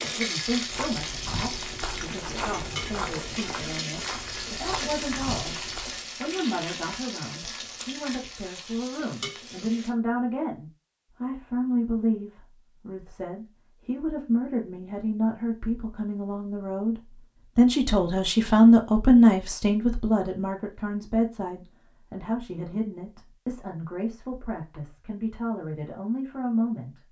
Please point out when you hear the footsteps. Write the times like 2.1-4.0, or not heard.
0.5-6.0.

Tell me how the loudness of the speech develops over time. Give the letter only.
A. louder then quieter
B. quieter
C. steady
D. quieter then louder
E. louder
A.